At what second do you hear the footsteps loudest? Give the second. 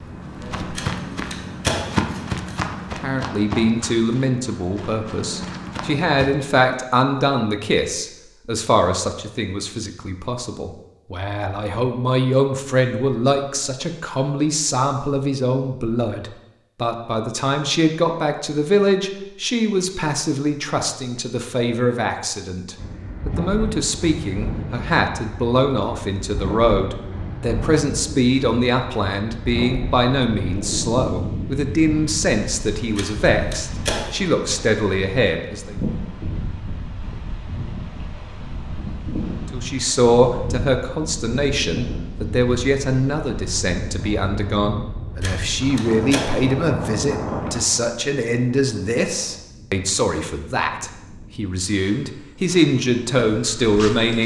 2 s.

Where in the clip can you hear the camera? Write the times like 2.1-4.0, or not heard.
0.8-2.6, 33.0-34.1, 45.2-46.2.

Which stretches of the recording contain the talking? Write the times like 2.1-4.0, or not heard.
3.0-35.8, 39.5-54.2.